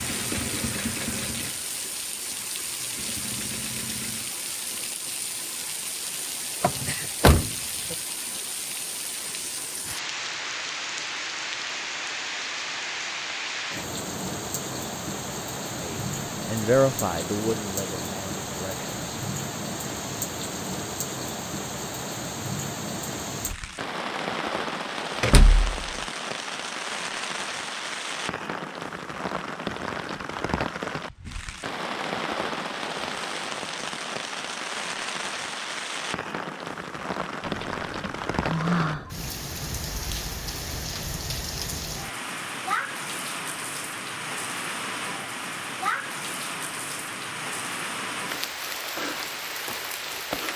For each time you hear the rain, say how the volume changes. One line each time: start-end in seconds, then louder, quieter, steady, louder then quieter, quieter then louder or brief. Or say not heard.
0.0-50.5 steady.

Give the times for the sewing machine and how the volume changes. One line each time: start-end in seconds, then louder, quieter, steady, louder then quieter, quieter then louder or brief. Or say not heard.
0.0-4.3 quieter then louder.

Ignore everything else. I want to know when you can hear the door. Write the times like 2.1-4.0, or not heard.
6.6-8.0, 25.2-25.9, 37.4-39.1.